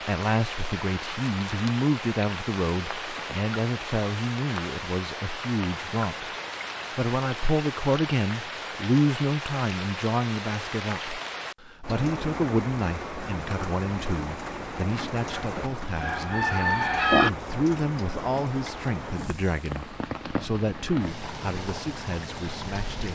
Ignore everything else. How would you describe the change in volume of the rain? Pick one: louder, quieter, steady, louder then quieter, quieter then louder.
steady.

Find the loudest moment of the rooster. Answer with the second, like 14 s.
17 s.